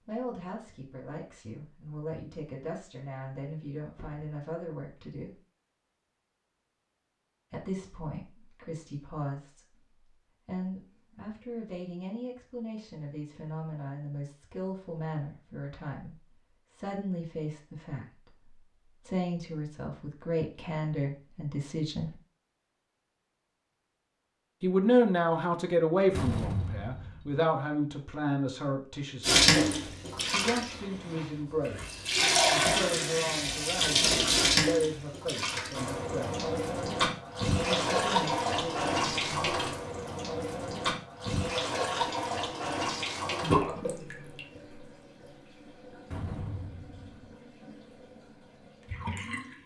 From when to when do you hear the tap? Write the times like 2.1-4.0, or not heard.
29.2-49.6.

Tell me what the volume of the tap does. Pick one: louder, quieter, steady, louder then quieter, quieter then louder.
quieter.